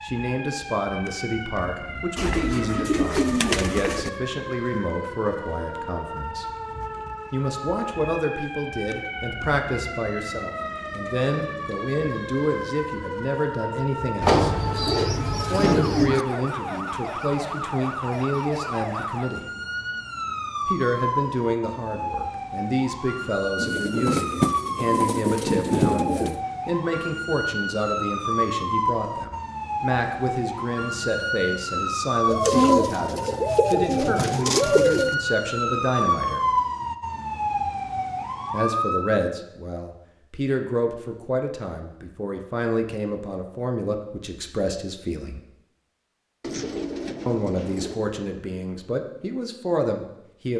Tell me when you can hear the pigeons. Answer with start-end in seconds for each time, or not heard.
2.1-4.1, 14.2-16.2, 23.6-26.4, 32.2-35.1, 46.4-48.0.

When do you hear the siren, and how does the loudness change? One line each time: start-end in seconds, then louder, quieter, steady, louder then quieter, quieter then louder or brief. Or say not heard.
0.0-39.2 louder.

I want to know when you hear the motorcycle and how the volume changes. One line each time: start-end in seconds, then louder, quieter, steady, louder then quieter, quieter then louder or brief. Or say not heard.
not heard.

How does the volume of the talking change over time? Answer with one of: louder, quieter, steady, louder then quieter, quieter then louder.
steady.